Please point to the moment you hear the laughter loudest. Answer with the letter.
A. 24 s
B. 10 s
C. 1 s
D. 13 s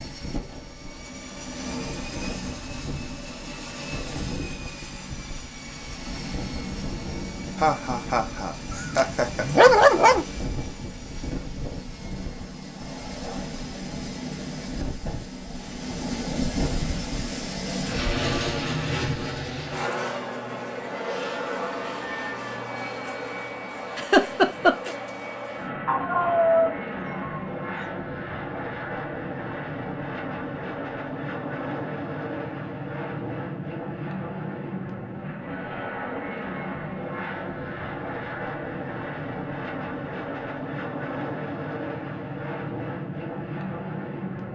A.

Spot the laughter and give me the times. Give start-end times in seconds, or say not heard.
7.5-9.7, 23.9-24.9.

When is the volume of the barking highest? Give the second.
10 s.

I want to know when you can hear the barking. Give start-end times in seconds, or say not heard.
8.7-10.2, 25.9-27.9.